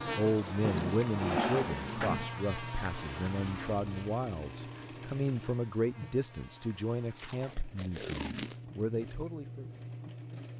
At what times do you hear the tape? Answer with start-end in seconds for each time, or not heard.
0.7-1.1, 7.1-8.8.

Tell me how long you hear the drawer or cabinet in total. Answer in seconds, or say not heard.
2 s.